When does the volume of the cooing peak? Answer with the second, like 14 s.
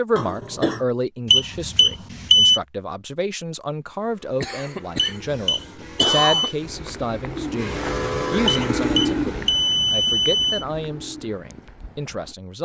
9 s.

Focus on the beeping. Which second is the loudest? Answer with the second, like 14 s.
2 s.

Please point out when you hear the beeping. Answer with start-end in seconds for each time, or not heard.
1.3-2.6, 5.0-6.5, 8.4-10.7.